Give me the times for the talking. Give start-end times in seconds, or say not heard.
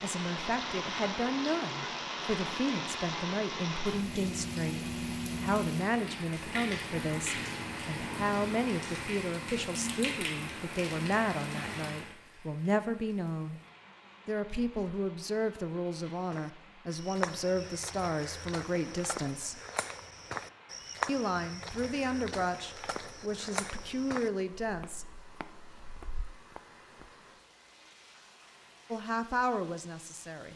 0.0-13.6, 14.2-19.6, 21.1-25.1, 28.9-30.5.